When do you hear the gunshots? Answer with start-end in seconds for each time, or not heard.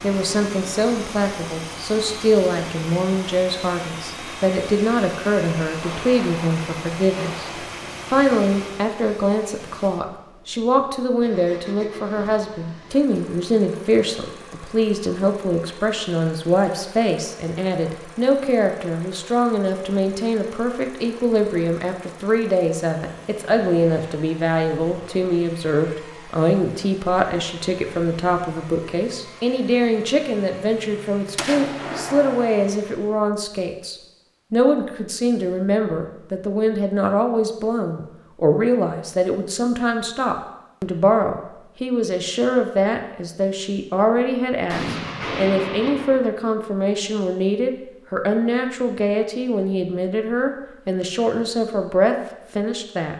5.8-7.7, 31.4-32.6, 44.7-46.2.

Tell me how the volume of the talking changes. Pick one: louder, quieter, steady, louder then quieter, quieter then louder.
steady.